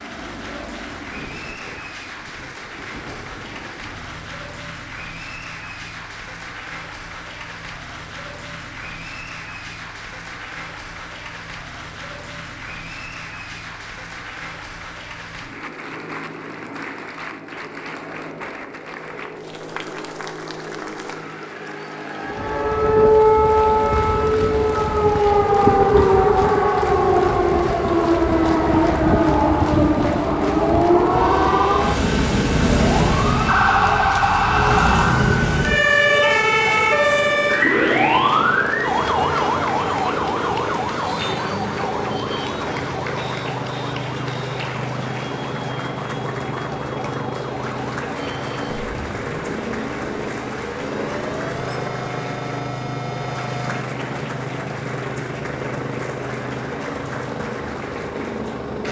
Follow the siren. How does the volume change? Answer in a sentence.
The volume of the siren goes down.